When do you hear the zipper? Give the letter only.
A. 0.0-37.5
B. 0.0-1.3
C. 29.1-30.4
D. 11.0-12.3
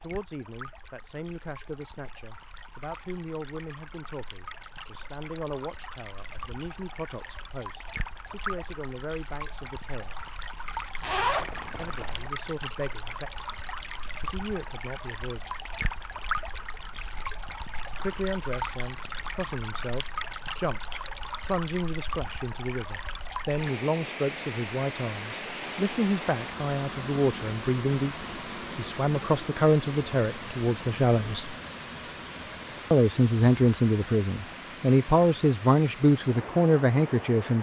D.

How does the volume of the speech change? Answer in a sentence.
The loudness of the speech goes up.